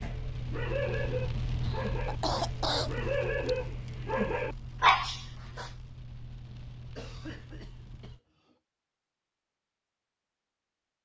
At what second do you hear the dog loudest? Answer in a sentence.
The loudest moment of the dog is at 5 seconds.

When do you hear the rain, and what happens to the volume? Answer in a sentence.
The rain can be heard from 0.0 to 8.2 s, getting quieter.